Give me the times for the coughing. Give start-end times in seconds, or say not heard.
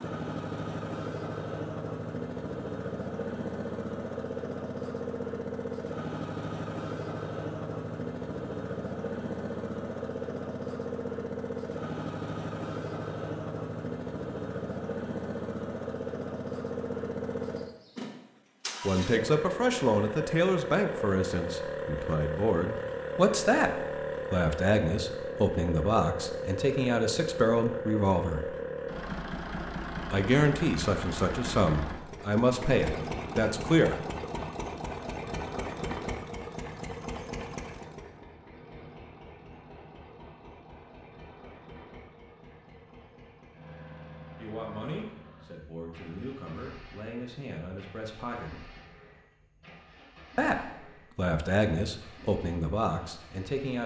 not heard.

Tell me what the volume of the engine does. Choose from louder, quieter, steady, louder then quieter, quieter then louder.
quieter.